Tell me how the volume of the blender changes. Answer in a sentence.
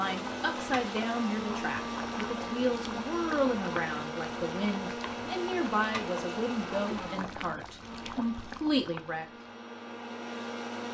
The volume of the blender goes down.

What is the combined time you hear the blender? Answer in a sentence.
You can hear the blender for 11 seconds altogether.